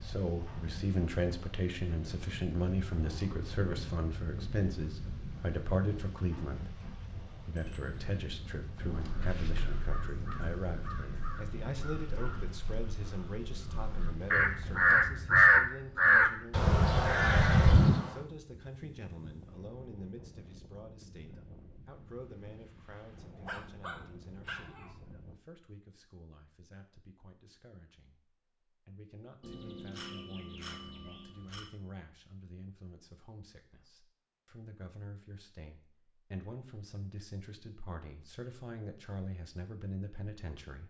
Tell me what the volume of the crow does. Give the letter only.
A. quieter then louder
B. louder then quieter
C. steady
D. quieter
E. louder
E.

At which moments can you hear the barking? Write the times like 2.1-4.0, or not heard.
23.3-25.1.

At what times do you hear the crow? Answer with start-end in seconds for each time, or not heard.
9.0-18.1.